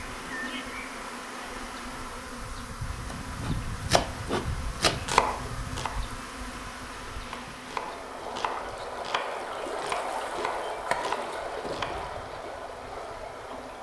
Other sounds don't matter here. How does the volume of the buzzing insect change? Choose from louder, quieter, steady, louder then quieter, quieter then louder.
quieter.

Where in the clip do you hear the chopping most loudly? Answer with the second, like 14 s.
5 s.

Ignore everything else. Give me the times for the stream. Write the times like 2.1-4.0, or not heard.
0.0-13.7.